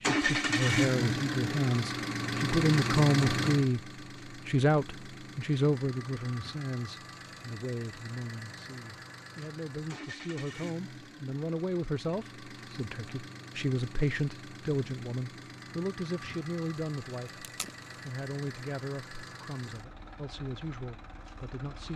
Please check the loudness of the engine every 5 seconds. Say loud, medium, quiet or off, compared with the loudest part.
loud, quiet, quiet, quiet, quiet.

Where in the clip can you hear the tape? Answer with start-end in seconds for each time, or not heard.
17.2-18.0.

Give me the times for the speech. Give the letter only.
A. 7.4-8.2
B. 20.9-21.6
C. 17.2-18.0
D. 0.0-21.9
D.